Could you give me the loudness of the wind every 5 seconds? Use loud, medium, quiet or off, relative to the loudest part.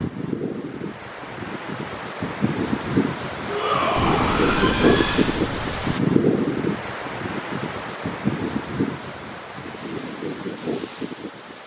loud, loud, medium.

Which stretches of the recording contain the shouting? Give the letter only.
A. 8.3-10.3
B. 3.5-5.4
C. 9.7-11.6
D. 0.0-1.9
B.